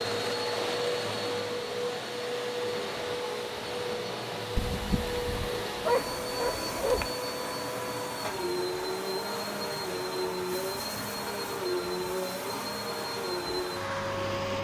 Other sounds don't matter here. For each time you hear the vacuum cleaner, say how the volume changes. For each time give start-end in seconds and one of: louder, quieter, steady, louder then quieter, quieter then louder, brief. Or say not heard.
0.0-14.6 steady.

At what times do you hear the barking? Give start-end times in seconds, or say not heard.
4.5-7.1.